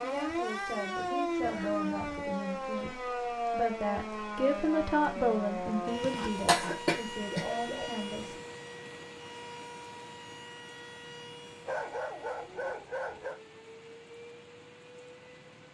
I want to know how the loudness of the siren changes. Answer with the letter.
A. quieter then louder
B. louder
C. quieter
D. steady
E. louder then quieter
C.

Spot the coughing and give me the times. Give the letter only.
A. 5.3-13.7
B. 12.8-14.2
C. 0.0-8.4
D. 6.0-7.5
D.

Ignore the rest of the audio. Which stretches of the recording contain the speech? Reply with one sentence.
The speech can be heard from 0.0 to 8.4 s.